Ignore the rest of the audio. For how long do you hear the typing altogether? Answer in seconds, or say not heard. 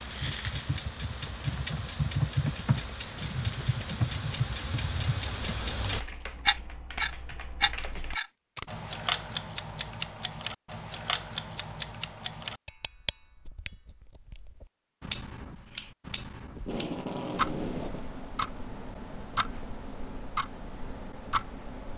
8 s.